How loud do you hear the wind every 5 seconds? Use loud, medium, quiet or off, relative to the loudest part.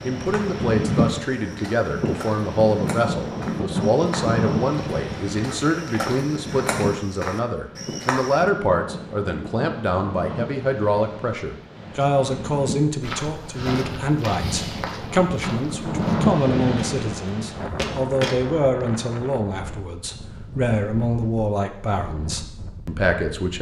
loud, medium, medium, loud, quiet.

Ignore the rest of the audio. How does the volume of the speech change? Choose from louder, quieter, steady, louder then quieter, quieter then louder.
steady.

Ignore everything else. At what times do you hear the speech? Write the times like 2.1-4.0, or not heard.
0.0-23.5.